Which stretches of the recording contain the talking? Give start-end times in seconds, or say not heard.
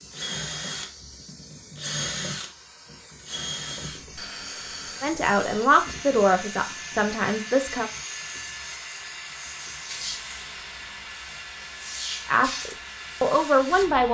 5.0-7.9, 12.2-14.0.